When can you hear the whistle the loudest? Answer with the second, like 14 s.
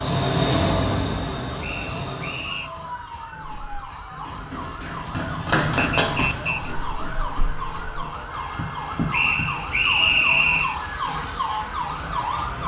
10 s.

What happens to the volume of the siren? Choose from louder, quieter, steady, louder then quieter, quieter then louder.
louder.